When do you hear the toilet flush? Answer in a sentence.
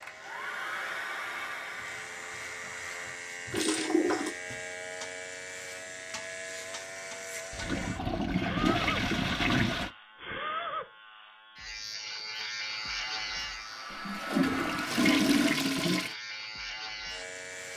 The toilet flush can be heard from 3.5 to 4.3 s, from 7.5 to 9.9 s and from 13.9 to 16.1 s.